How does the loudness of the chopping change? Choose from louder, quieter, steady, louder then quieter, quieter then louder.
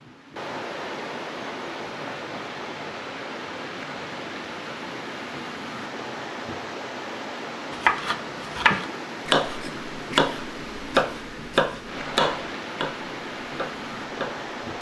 quieter.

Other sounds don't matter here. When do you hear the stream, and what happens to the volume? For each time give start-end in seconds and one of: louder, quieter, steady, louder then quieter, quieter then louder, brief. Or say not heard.
0.0-14.7 steady.